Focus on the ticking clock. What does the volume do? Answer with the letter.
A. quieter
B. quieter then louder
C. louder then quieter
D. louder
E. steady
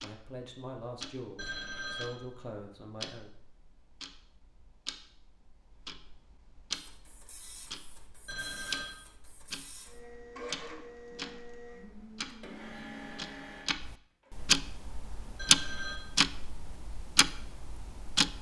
D.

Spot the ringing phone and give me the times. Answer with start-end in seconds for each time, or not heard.
1.4-2.1, 8.2-8.9, 15.3-16.0.